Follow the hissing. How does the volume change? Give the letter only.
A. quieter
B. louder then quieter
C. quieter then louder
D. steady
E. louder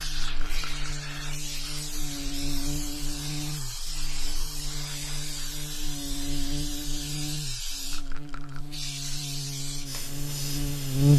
D.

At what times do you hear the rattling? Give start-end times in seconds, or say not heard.
0.1-0.9, 7.8-8.7.